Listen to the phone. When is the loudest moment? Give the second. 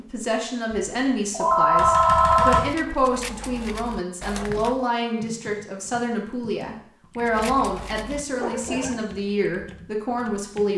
2 s.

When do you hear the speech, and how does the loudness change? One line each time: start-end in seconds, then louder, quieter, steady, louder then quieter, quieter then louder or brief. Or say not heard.
0.0-10.7 steady.